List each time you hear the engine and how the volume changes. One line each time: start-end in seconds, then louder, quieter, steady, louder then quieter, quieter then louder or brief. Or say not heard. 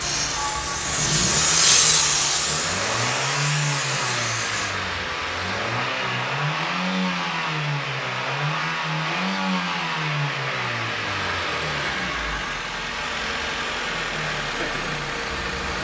0.0-15.7 steady.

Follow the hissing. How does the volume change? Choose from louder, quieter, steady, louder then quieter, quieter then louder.
louder then quieter.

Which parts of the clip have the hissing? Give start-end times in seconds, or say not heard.
0.0-4.7.